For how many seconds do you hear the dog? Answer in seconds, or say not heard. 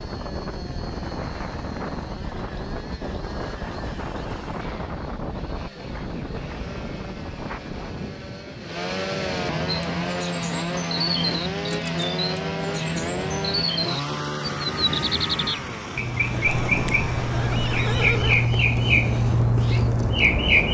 not heard.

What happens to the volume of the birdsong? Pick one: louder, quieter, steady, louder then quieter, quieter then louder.
louder.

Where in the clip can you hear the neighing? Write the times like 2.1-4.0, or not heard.
16.4-18.5.